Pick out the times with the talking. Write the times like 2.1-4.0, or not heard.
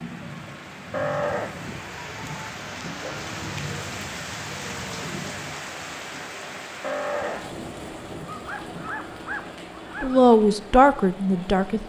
10.0-11.8.